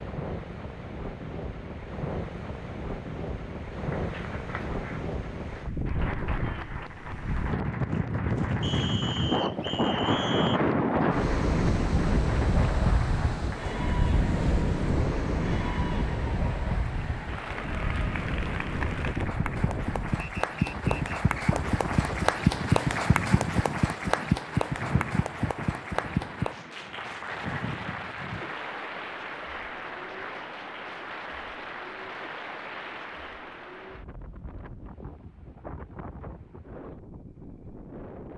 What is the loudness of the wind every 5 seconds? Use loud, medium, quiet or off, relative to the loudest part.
medium, loud, loud, medium, medium, quiet, quiet, quiet.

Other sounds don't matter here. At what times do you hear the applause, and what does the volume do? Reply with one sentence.
You can hear the applause from 4.0 to 33.3 s, getting louder then quieter.